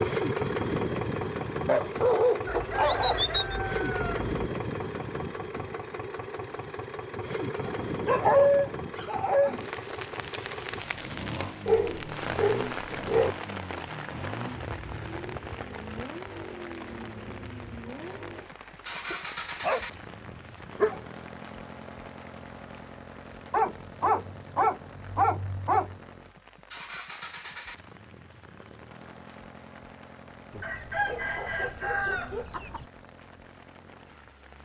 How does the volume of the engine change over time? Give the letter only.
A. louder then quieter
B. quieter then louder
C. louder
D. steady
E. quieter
E.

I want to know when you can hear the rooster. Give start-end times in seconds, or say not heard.
2.5-4.5, 30.5-32.9.